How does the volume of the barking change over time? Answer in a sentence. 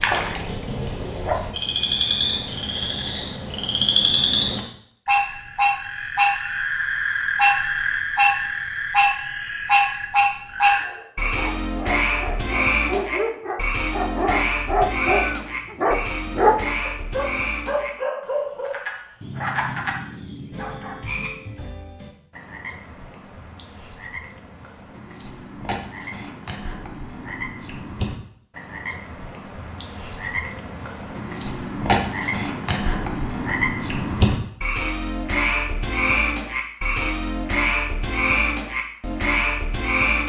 The loudness of the barking goes up, then down.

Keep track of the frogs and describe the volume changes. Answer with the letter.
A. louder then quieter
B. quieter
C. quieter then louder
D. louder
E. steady
C.